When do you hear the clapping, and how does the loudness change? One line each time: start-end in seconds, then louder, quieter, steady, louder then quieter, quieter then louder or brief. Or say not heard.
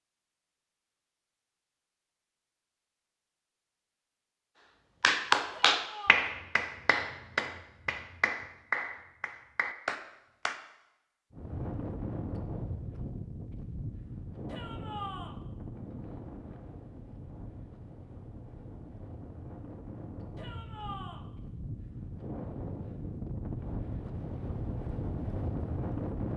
5.0-10.6 quieter.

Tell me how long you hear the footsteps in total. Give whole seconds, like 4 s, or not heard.
not heard.